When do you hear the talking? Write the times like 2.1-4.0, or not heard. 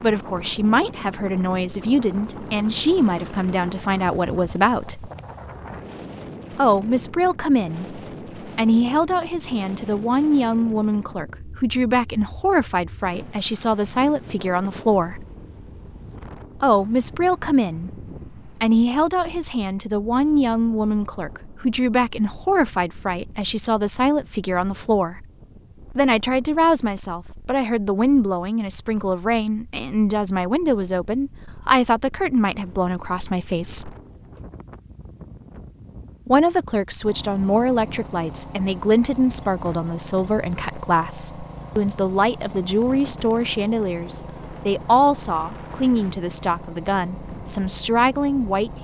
0.0-5.1, 6.5-15.2, 16.6-25.2, 25.9-33.9, 36.2-48.7.